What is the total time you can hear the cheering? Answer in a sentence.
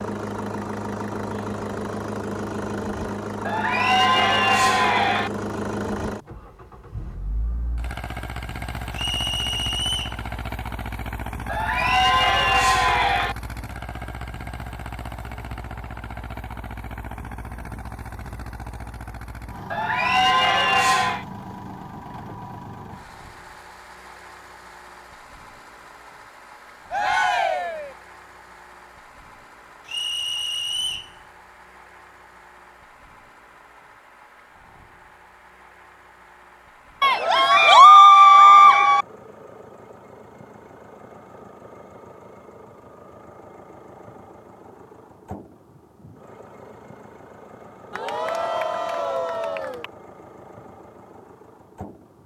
You can hear the cheering for 10 seconds altogether.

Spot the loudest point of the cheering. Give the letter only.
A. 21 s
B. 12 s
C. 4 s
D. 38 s
D.